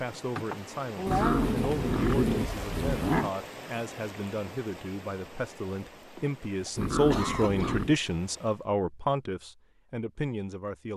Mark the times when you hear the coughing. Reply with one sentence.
The coughing can be heard from 0.3 to 1.6 s and from 6.2 to 7.8 s.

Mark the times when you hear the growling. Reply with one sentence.
The growling can be heard from 1.1 to 3.3 s and from 6.8 to 8.0 s.